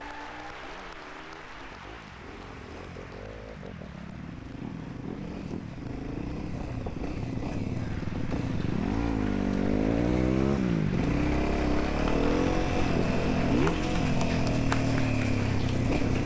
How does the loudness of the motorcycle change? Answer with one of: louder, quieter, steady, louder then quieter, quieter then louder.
louder.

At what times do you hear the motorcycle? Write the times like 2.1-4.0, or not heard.
0.0-16.2.